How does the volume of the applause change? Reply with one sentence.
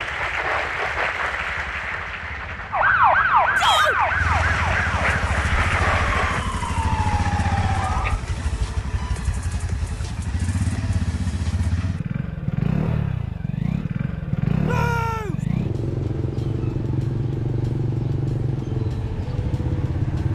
The loudness of the applause goes down, then up.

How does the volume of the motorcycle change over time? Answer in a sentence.
The volume of the motorcycle goes up.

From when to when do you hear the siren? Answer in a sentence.
The siren can be heard from 2.7 to 8.2 s.